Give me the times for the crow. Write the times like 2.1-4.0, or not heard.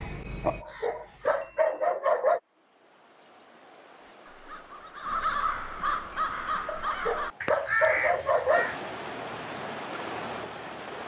0.0-1.8, 4.0-8.8.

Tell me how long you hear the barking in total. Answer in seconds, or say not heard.
4 s.